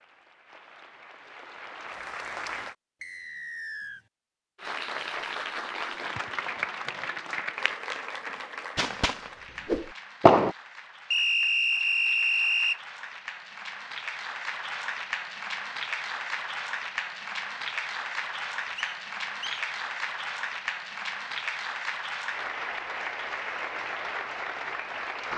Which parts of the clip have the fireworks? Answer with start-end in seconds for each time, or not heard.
8.8-10.6.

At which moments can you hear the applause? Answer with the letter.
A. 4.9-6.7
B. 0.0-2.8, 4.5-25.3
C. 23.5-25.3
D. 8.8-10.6
B.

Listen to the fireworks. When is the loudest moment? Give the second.
10 s.